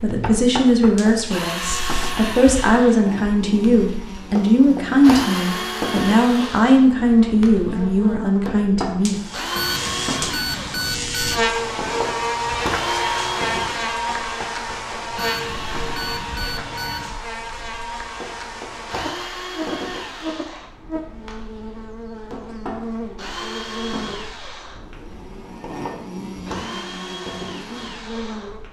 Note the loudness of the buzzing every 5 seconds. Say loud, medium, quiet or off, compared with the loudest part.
medium, medium, loud, medium, medium, medium.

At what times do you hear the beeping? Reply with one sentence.
You can hear the beeping from 9.6 to 11.4 s and from 15.2 to 17.2 s.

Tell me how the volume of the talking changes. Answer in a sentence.
The volume of the talking stays about the same.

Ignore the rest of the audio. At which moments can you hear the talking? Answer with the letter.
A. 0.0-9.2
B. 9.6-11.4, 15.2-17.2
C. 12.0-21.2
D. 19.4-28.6
A.